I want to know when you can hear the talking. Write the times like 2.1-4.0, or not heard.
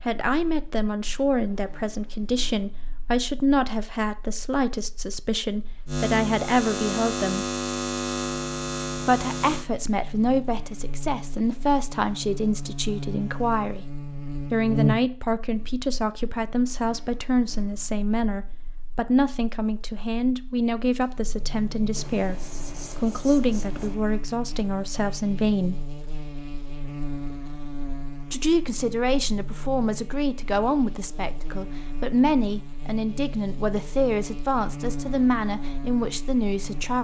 0.1-7.5, 9.1-13.9, 14.5-25.9, 28.3-36.9.